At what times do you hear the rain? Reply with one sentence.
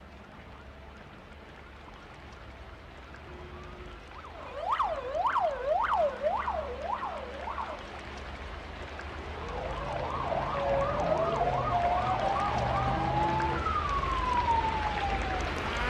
You can hear the rain from 0.0 to 15.8 s.